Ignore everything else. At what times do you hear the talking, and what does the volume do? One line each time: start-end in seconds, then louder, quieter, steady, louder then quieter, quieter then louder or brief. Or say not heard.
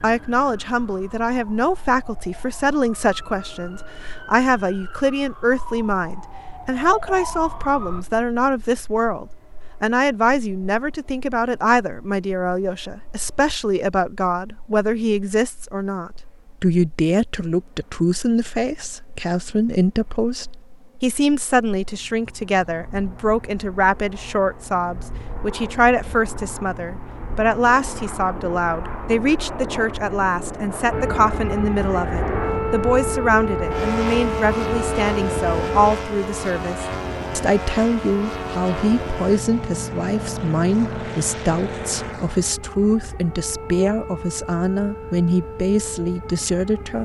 0.0-46.9 steady.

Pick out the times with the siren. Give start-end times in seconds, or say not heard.
0.0-8.1, 30.9-46.9.